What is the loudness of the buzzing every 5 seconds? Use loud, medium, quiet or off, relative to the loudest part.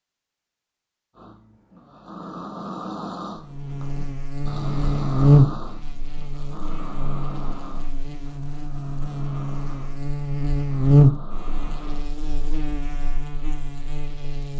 medium, loud, loud.